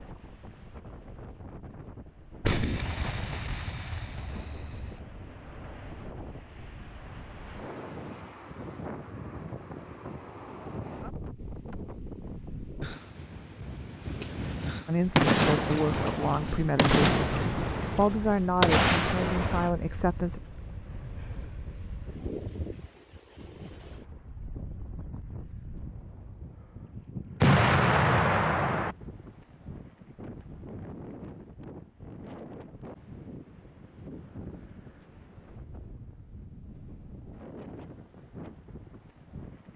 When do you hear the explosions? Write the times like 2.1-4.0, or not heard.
2.4-5.0, 15.1-19.8, 27.4-28.9.